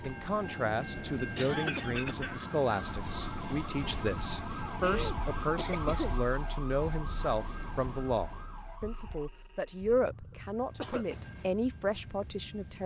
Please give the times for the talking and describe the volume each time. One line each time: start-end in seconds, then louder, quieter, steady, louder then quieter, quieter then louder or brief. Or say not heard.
0.0-12.8 steady.